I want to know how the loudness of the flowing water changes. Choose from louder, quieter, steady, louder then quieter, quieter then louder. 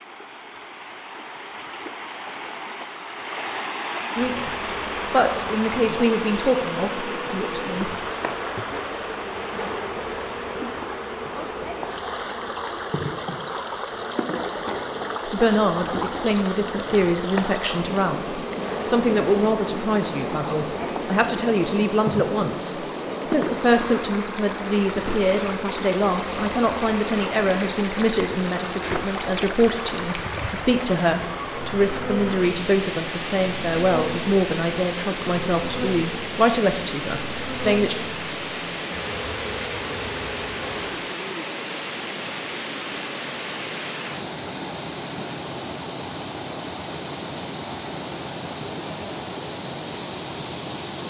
steady.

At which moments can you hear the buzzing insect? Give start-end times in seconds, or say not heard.
4.1-41.1.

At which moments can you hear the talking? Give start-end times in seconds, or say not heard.
4.2-7.9, 15.2-38.0.